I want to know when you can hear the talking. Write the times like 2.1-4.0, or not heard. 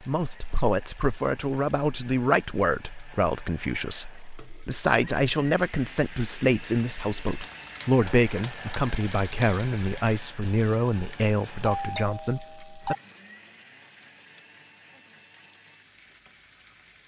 0.0-12.9.